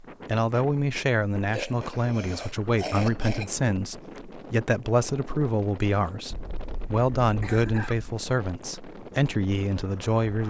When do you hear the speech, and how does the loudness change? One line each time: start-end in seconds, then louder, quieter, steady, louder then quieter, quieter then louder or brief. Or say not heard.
0.2-10.4 steady.